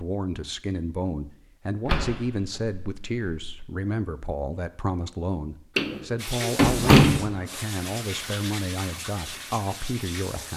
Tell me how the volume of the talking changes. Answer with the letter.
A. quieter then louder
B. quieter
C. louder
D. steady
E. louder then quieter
D.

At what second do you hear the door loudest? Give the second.
7 s.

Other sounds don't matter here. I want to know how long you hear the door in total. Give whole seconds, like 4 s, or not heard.
3 s.